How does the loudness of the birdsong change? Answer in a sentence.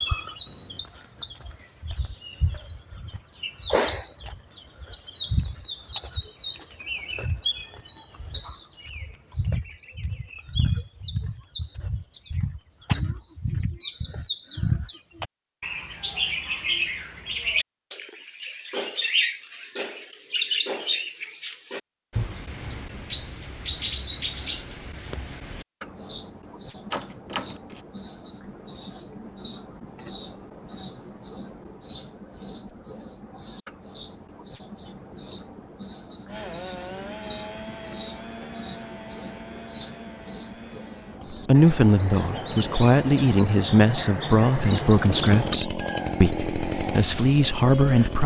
The loudness of the birdsong stays about the same.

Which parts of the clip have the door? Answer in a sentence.
The door can be heard from 26.9 to 27.8 s.